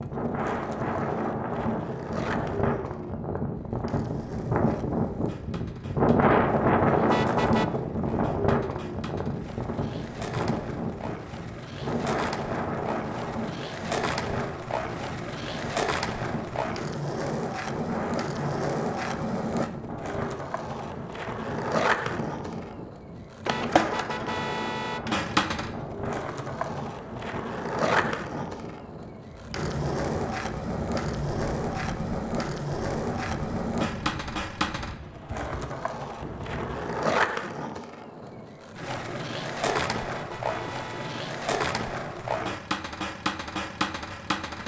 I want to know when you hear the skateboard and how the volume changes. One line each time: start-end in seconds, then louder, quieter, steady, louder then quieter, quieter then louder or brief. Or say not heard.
0.0-44.6 louder.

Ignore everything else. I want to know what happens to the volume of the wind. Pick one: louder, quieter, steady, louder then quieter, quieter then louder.
quieter.